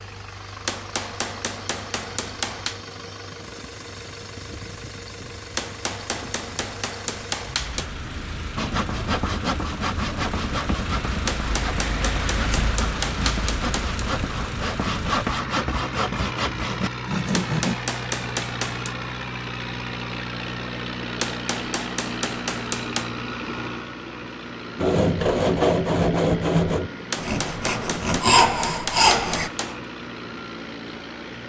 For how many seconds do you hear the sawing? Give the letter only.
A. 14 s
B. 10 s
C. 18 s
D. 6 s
A.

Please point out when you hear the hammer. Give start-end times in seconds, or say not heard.
0.7-2.8, 5.5-7.9, 11.2-14.0, 17.3-18.9, 21.2-23.1, 27.1-29.8.